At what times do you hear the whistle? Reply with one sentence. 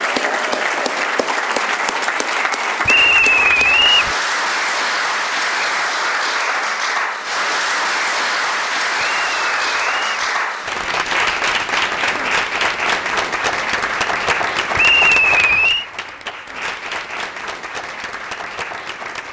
You can hear the whistle from 2.9 to 4.2 s, from 9.0 to 10.3 s and from 14.8 to 15.8 s.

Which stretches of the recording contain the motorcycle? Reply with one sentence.
You can't hear the motorcycle here.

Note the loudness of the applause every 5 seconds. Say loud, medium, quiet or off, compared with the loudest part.
loud, loud, loud, medium.